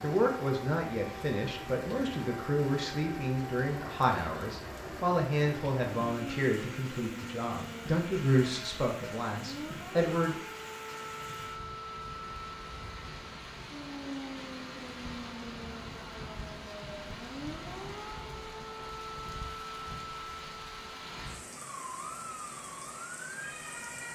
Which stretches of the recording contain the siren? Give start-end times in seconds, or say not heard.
0.0-24.1.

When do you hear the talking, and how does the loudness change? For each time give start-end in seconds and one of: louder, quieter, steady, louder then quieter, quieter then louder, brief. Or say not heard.
0.0-10.3 steady.